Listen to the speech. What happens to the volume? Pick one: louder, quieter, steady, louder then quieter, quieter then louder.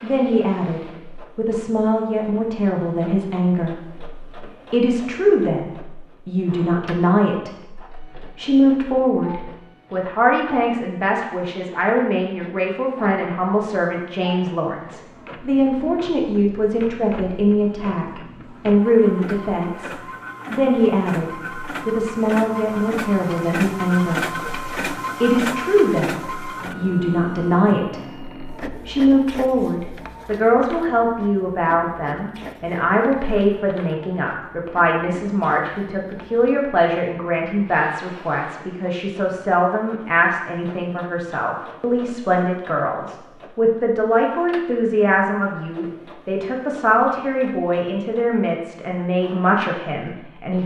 steady.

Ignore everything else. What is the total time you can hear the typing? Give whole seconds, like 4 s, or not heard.
not heard.